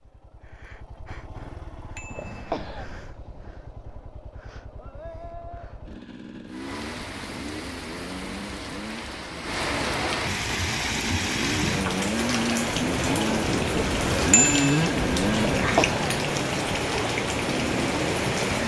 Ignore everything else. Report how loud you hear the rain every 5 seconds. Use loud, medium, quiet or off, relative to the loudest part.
off, medium, loud, loud.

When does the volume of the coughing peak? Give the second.
16 s.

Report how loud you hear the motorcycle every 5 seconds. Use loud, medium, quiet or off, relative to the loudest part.
quiet, quiet, loud, loud.